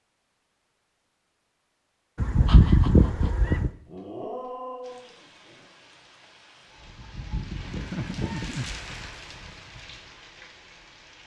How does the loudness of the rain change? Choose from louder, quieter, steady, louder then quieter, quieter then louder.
louder then quieter.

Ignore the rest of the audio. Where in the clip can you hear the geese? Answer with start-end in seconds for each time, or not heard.
2.1-3.7, 7.0-9.2.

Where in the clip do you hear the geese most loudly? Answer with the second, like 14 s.
3 s.